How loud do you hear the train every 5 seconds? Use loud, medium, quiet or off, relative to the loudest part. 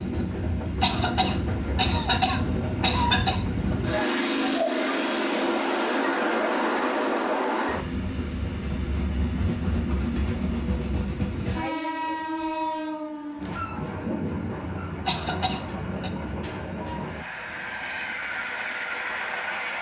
loud, loud, loud, medium.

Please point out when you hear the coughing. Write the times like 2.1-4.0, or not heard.
0.8-3.5, 15.1-16.1.